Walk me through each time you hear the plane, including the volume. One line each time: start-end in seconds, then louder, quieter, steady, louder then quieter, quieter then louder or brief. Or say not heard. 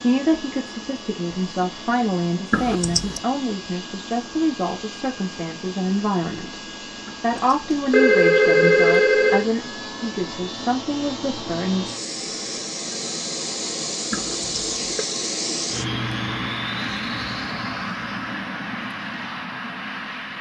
0.0-20.3 louder.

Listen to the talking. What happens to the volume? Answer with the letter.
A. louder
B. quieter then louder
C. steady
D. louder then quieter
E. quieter
C.